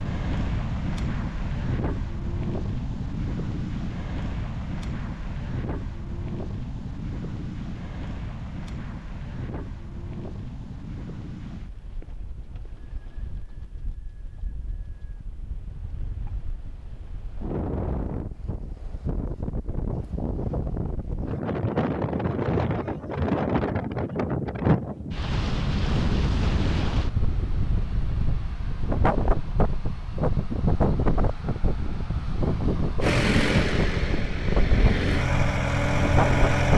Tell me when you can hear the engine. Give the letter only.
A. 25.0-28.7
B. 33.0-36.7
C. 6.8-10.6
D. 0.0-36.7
B.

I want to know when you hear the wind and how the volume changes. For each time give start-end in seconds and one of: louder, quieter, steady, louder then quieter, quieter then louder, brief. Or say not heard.
0.0-36.7 quieter then louder.